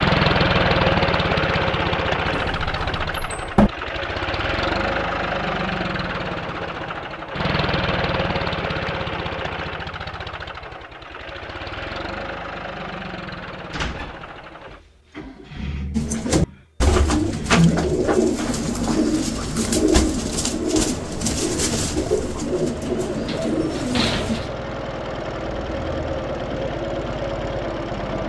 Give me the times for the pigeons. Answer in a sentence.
The pigeons can be heard from 15.9 to 24.4 s.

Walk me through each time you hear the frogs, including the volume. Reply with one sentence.
The frogs can't be heard in this clip.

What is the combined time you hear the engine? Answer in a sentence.
The engine can be heard for 28 seconds in total.